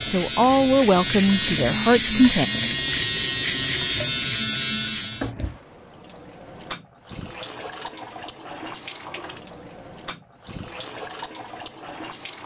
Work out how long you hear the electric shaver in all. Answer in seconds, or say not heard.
5 s.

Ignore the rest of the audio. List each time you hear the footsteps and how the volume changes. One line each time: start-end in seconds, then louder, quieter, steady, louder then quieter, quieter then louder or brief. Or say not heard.
not heard.